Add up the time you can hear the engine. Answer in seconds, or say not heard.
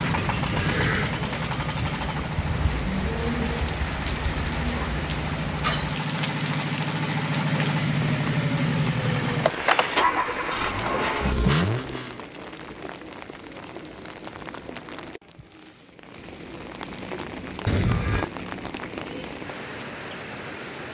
12 s.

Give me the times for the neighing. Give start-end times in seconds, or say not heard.
0.1-1.1, 17.6-18.3.